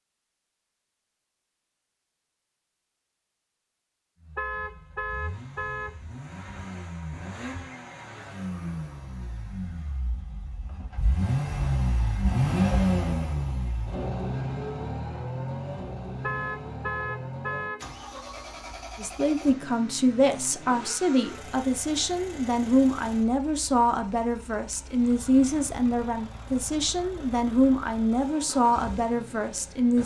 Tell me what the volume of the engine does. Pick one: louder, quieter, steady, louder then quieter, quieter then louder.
louder then quieter.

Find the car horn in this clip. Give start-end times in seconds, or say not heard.
4.3-6.0, 16.2-17.9.